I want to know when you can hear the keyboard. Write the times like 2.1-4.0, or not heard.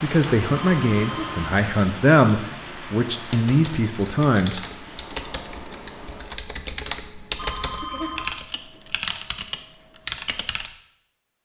3.1-10.7.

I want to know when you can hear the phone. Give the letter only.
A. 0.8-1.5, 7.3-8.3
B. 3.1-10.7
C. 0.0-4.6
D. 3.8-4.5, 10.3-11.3
A.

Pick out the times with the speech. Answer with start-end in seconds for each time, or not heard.
0.0-4.6.